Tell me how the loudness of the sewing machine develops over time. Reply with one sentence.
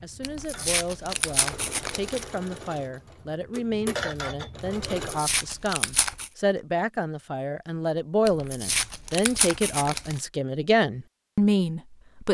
The volume of the sewing machine goes up.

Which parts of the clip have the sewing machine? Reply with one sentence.
You can hear the sewing machine from 0.0 to 5.2 s.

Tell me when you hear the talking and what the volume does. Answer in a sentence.
You can hear the talking from 0.0 to 12.2 s, getting louder.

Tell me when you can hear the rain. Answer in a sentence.
You can't hear the rain here.